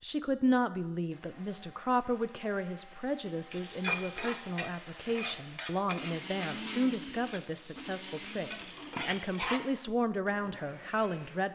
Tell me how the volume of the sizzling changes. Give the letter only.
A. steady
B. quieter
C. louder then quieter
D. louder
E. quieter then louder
E.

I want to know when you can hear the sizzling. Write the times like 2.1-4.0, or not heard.
3.5-9.6.